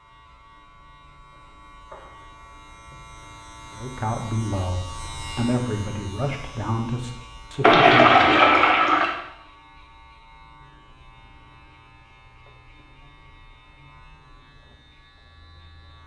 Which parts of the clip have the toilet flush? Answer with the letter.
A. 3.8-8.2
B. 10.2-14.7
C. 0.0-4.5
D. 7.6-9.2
D.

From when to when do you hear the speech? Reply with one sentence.
You can hear the speech from 3.8 to 8.2 s.